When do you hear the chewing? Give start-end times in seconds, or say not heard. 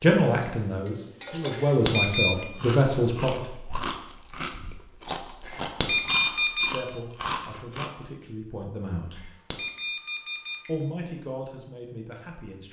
2.3-7.9.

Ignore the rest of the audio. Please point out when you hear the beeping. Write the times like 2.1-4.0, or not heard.
1.5-2.4, 5.5-6.7, 9.2-10.7.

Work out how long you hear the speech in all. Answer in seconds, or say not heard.
8 s.